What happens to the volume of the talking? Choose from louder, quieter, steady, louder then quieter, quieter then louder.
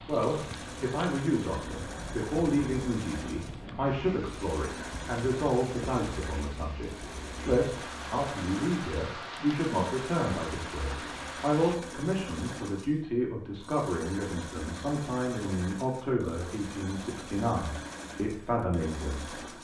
steady.